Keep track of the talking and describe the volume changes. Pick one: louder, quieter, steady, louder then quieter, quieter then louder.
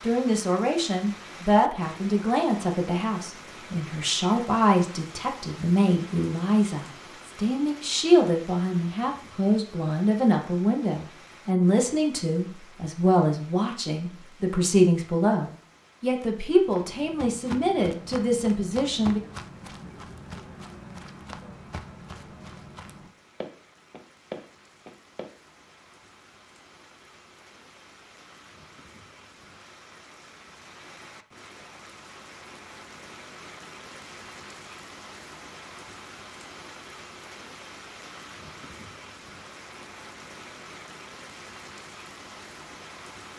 steady.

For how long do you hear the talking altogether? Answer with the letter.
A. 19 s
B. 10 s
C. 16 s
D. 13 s
A.